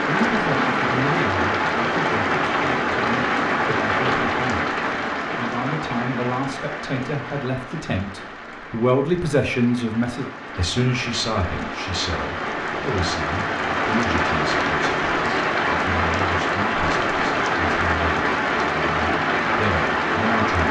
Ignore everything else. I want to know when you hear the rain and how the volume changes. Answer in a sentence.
You can hear the rain from 0.0 to 20.6 s, getting quieter then louder.